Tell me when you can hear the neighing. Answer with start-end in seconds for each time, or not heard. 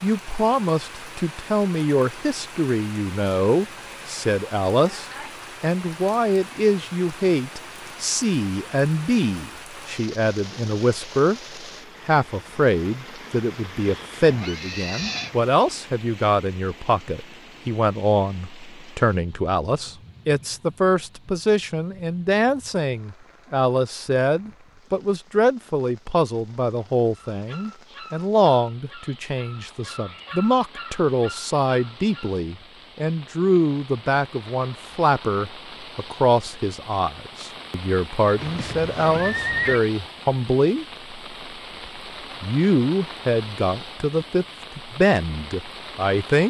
14.2-15.3, 38.4-39.8.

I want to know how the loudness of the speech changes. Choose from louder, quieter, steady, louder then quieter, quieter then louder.
steady.